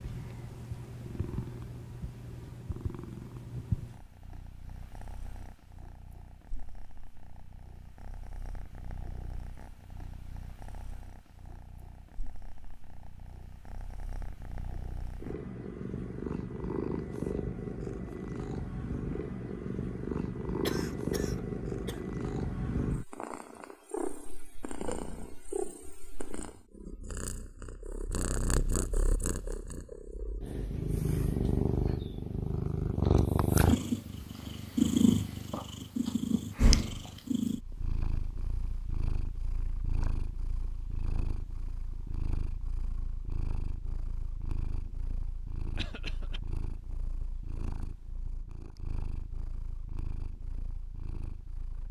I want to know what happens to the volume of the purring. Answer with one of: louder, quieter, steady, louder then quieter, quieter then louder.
louder then quieter.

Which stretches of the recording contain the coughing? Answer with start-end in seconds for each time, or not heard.
20.6-22.0, 45.8-46.4.